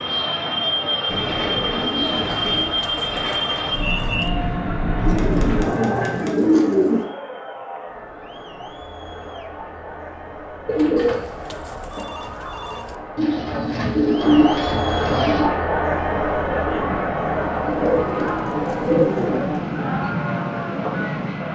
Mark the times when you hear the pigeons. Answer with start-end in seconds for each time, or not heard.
1.1-2.7, 5.0-7.0, 10.7-11.2, 13.2-15.4, 17.6-19.8.